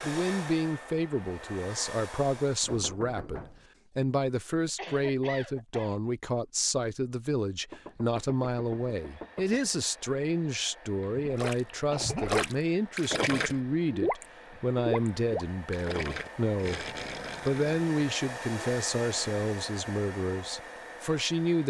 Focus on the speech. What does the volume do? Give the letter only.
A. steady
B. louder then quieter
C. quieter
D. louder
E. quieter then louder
A.